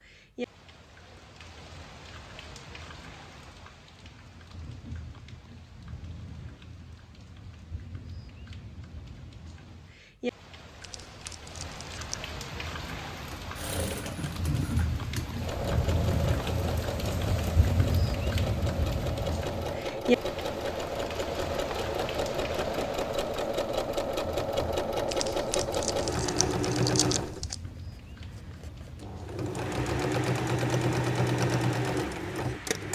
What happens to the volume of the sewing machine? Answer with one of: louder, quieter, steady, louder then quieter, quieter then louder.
louder.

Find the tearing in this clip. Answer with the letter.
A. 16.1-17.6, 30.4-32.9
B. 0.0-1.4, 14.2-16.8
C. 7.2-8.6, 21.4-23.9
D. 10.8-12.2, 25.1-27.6
D.